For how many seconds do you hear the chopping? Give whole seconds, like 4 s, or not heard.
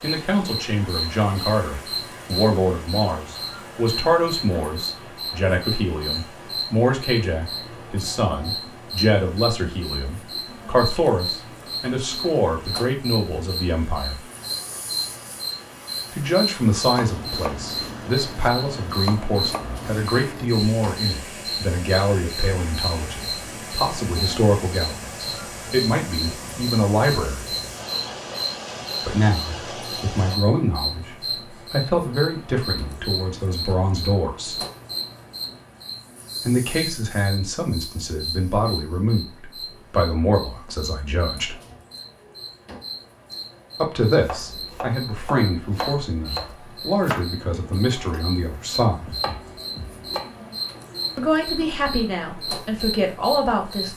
10 s.